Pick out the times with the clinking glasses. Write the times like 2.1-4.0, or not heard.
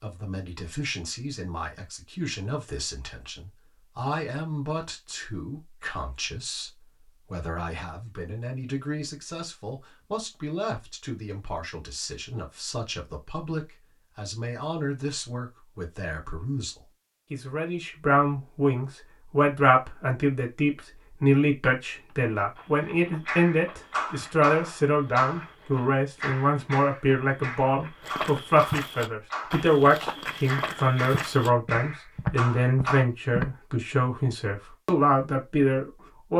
not heard.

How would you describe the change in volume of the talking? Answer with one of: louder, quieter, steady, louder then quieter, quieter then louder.
louder.